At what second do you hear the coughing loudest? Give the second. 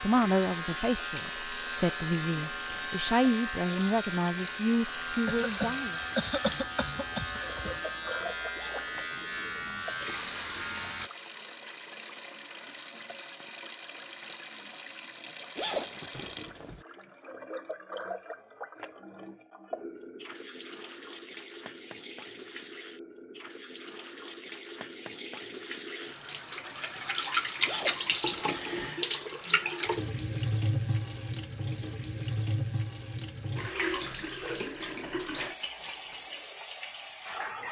6 s.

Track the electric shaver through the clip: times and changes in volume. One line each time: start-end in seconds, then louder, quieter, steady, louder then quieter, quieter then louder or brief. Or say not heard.
0.0-11.1 steady.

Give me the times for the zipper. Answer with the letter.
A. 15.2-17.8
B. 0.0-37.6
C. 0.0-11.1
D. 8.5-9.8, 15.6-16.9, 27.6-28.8
D.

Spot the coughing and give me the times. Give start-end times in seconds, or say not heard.
5.2-7.8.